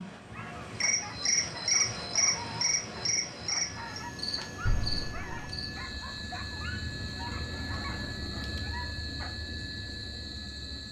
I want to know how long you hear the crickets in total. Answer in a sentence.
The crickets can be heard for 11 seconds in total.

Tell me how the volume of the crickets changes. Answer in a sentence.
The loudness of the crickets goes down.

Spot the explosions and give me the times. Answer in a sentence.
The explosions can be heard from 4.7 to 5.5 s.